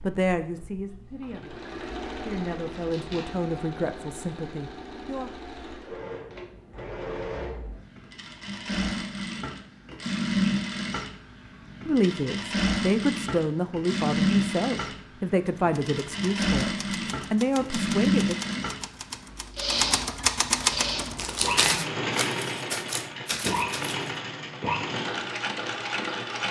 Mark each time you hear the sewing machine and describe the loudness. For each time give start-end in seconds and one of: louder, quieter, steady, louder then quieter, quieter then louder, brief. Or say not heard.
0.0-26.4 louder.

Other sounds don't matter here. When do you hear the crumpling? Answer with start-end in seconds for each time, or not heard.
2.7-3.5, 21.1-21.8.